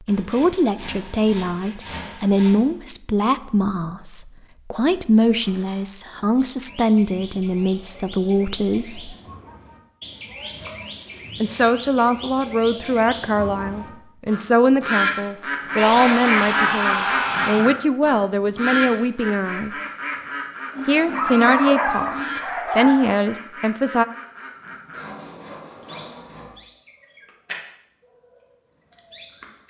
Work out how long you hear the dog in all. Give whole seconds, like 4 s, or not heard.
2 s.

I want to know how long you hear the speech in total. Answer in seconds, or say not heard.
21 s.